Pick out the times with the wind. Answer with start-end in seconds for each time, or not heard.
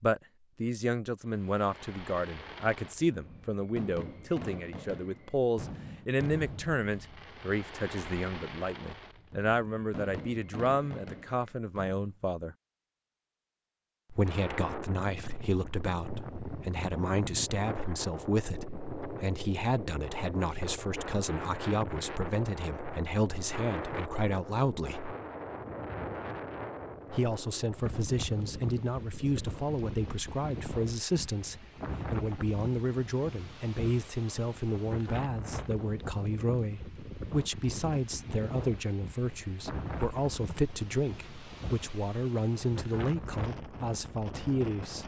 14.2-45.0.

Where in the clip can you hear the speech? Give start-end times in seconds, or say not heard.
0.0-12.6, 14.1-25.1, 27.1-45.0.